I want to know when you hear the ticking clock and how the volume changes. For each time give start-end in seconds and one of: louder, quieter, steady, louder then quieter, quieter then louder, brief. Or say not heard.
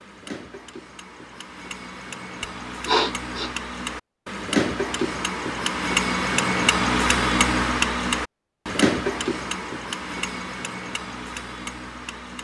0.0-12.3 louder then quieter.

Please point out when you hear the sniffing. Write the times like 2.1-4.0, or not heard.
2.4-3.5.